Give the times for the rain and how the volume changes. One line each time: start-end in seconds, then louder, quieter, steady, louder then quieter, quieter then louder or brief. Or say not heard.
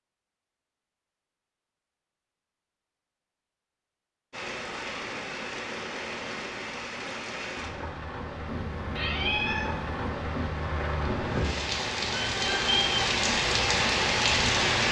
4.3-14.8 louder.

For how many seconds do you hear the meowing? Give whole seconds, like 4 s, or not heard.
2 s.